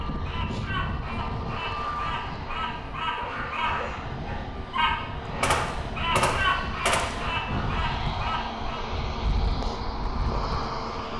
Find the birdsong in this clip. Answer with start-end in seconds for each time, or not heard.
0.0-8.8.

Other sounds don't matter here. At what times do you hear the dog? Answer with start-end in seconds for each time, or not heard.
3.1-4.0.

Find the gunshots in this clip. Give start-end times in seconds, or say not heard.
5.4-7.3.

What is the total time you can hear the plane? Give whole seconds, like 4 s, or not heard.
11 s.